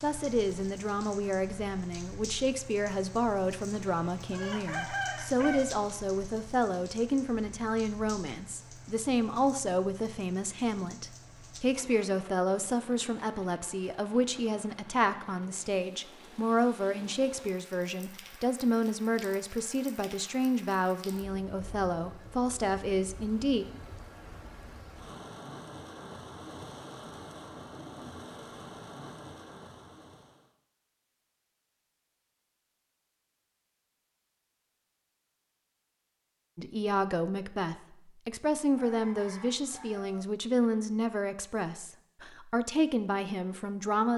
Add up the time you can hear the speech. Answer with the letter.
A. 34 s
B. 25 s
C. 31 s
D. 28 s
C.